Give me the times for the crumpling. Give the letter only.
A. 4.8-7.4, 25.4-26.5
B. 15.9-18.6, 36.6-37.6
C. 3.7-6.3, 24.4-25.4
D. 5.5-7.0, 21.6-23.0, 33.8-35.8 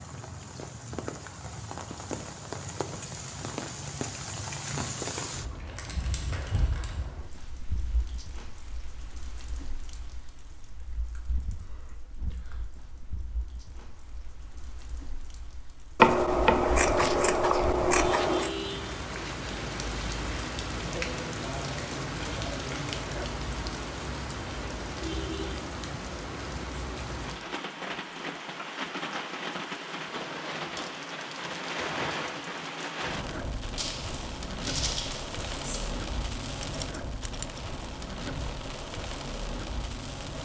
D.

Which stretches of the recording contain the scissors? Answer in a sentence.
The scissors can be heard from 15.9 to 18.6 s and from 36.6 to 37.6 s.